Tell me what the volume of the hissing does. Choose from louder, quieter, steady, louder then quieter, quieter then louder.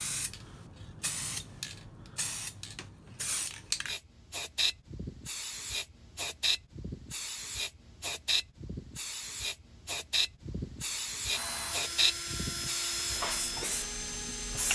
louder.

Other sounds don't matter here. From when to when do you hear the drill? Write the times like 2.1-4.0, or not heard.
11.3-14.6.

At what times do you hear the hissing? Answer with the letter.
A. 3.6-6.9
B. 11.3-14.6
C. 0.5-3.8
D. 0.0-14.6
D.